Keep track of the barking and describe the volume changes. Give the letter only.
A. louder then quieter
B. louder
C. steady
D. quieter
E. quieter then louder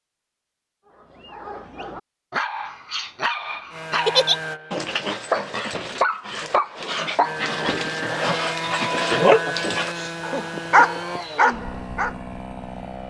B.